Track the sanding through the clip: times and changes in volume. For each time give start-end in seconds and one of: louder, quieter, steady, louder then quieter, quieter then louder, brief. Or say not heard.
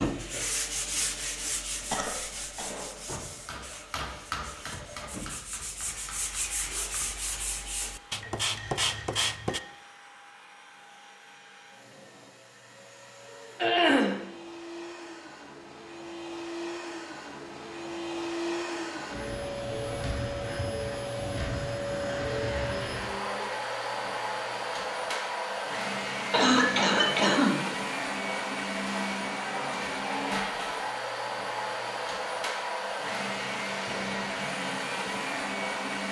0.0-9.6 quieter then louder.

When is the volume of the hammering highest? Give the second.
4 s.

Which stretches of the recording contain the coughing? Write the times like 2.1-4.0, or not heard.
1.9-2.6, 13.6-14.2, 26.3-27.6.